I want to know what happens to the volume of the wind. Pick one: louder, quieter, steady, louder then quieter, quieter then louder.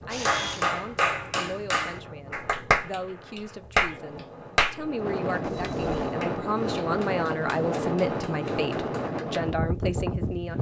louder.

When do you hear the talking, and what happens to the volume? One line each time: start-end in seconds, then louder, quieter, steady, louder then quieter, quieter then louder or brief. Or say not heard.
0.1-10.5 louder.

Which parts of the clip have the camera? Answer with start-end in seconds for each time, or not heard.
0.1-0.7, 5.4-6.2.